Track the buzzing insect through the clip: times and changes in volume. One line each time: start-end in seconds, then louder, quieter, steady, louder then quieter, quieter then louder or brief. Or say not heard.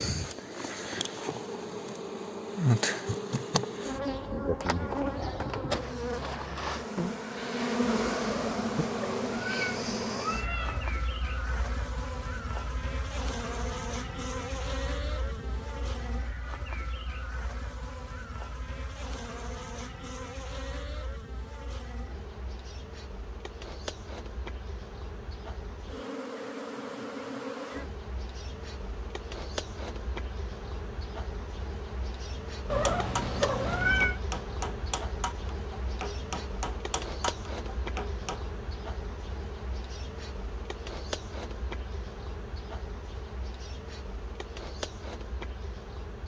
0.0-46.2 quieter.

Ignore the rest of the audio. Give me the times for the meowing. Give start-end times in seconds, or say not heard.
8.3-10.9, 32.7-34.2.